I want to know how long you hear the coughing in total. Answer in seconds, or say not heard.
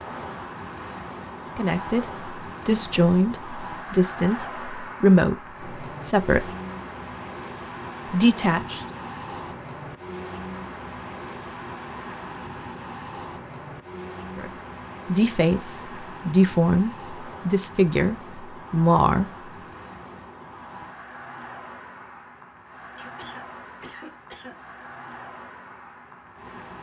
2 s.